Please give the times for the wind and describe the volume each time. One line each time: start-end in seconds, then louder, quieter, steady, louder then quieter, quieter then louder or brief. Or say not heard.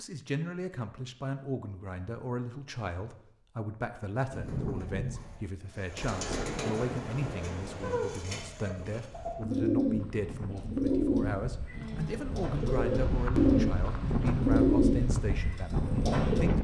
6.0-16.5 quieter then louder.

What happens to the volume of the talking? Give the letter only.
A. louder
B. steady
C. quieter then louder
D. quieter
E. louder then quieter
B.